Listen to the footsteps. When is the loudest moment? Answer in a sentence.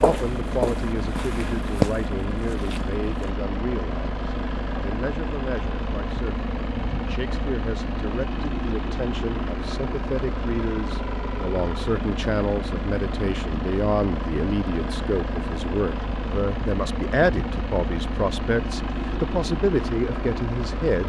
The volume of the footsteps peaks at 2 seconds.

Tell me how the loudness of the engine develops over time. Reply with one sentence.
The volume of the engine stays about the same.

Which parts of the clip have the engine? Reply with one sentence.
The engine can be heard from 0.0 to 21.0 s.